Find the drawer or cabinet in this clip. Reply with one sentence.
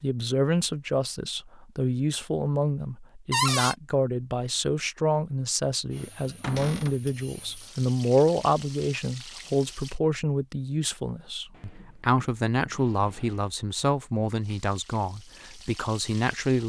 You can hear the drawer or cabinet from 3.3 to 3.8 s, from 6.4 to 7.0 s and from 11.5 to 13.5 s.